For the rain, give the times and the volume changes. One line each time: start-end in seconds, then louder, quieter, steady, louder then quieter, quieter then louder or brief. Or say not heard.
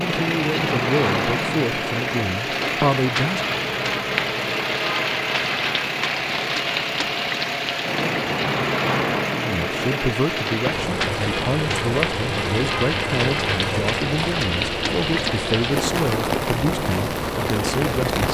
0.0-18.2 steady.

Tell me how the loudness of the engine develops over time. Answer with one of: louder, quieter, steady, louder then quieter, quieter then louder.
steady.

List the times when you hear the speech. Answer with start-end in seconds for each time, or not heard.
0.0-3.4, 9.4-18.2.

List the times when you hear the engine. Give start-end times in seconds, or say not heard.
0.0-18.2.